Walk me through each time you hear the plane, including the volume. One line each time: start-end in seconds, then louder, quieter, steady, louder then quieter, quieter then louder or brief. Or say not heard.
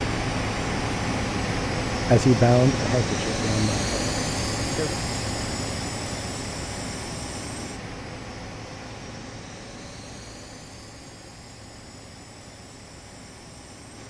0.0-14.0 quieter.